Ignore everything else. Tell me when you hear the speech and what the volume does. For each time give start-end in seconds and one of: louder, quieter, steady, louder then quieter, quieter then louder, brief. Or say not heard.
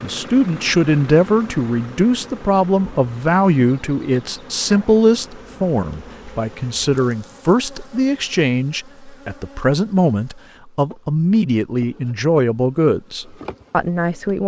0.0-14.4 steady.